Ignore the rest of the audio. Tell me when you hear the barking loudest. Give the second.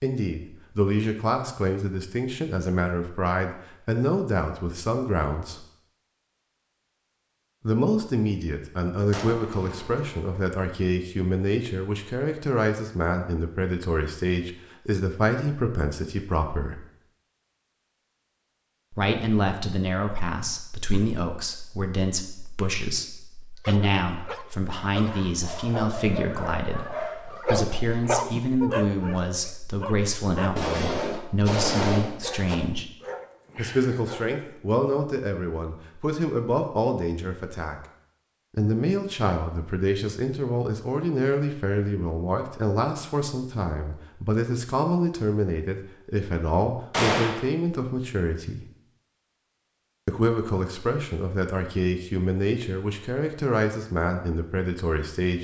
28 s.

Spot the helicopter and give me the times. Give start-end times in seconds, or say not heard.
not heard.